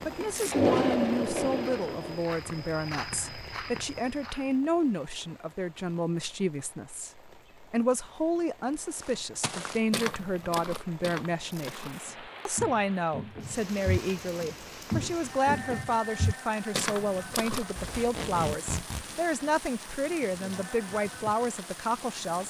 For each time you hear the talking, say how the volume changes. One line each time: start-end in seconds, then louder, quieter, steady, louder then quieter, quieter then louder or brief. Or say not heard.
0.1-22.4 steady.